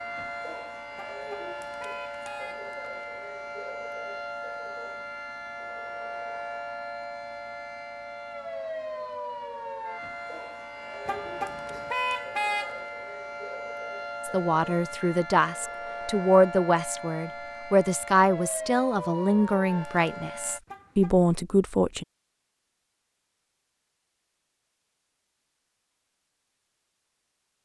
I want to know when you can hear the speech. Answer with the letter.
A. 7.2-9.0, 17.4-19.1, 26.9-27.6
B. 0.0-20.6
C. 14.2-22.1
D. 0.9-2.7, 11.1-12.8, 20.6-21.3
C.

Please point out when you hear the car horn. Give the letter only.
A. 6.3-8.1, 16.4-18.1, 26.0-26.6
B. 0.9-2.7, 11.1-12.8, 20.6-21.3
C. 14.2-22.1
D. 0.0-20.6
B.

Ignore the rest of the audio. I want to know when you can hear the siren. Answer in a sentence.
The siren can be heard from 0.0 to 20.6 s.